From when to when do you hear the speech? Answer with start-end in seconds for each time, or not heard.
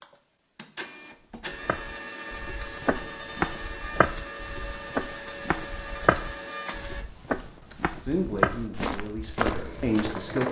8.1-10.4.